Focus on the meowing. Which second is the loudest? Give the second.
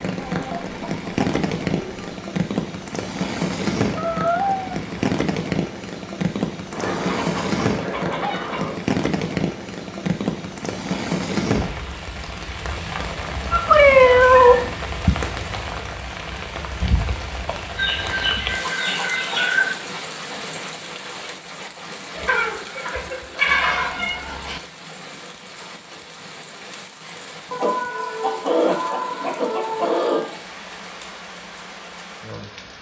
14 s.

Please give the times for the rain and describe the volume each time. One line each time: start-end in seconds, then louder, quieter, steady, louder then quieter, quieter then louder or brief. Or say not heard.
0.0-32.7 quieter.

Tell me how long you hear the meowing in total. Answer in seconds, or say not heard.
3 s.